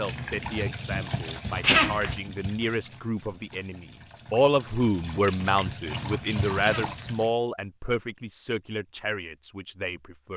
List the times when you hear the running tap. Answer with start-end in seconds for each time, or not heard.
0.0-7.3.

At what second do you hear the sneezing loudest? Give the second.
2 s.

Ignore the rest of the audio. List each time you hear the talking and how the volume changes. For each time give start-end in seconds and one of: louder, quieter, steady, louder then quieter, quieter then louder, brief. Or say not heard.
0.0-10.3 louder then quieter.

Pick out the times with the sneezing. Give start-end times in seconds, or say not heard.
1.6-2.1, 6.6-7.2.